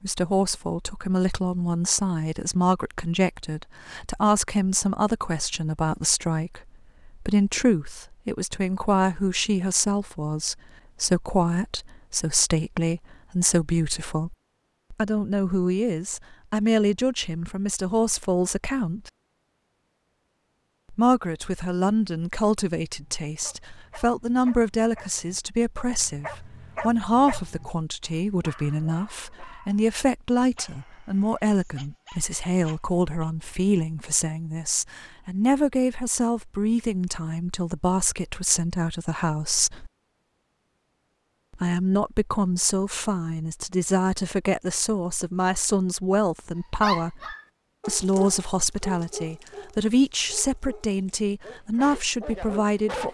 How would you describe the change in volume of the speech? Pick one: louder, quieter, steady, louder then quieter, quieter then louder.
steady.